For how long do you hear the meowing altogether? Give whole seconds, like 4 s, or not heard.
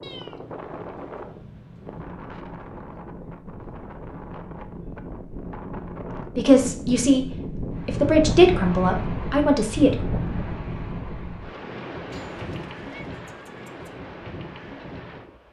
4 s.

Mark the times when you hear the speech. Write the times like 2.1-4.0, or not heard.
6.3-7.2, 7.8-9.9.